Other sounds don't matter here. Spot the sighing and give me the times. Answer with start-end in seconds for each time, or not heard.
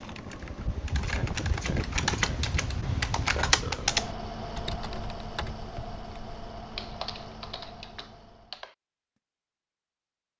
not heard.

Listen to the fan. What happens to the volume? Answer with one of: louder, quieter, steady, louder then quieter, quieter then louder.
quieter.